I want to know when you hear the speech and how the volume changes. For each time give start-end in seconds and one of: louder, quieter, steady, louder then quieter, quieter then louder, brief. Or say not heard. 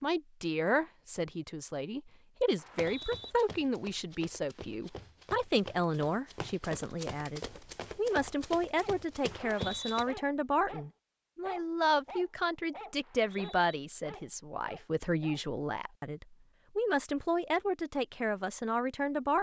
0.0-19.3 steady.